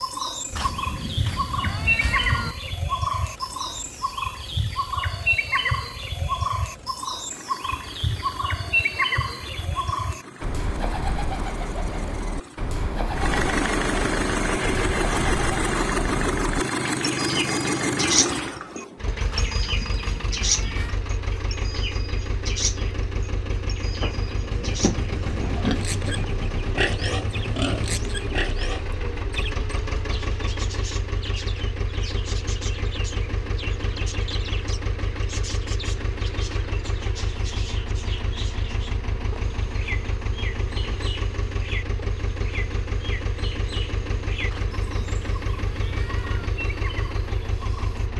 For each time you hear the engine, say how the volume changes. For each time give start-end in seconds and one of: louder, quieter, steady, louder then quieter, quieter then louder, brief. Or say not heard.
0.0-48.1 louder then quieter.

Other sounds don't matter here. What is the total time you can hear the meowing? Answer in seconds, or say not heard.
6 s.